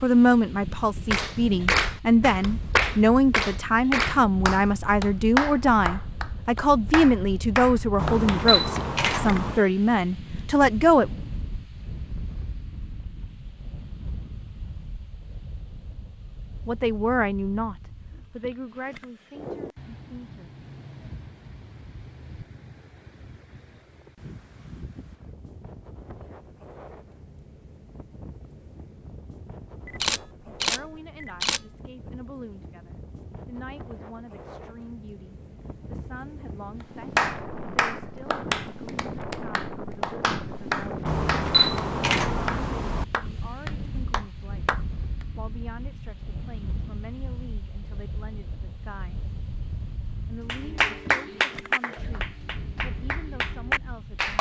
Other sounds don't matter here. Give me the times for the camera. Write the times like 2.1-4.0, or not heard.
8.0-9.6, 29.9-31.6, 41.0-43.0.